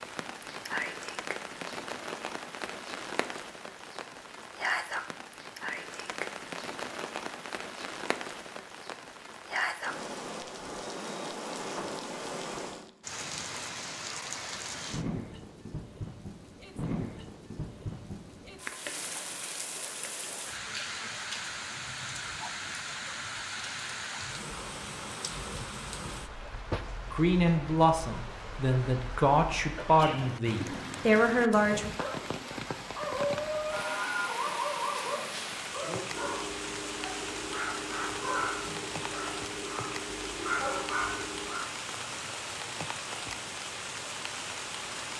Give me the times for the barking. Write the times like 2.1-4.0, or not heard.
31.9-41.6.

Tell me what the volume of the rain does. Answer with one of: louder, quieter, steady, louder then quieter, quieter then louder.
steady.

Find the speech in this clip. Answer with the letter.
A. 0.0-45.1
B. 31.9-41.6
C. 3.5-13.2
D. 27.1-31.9
D.